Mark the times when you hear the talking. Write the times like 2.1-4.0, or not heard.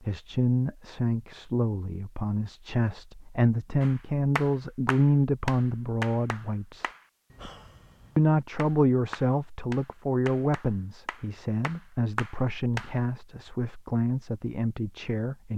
0.0-6.9, 8.2-15.5.